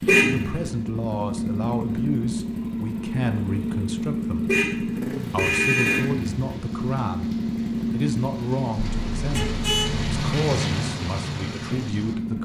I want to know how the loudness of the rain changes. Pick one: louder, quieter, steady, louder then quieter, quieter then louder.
louder.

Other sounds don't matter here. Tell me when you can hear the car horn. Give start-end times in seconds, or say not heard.
0.1-0.6, 4.5-6.1, 8.8-10.2.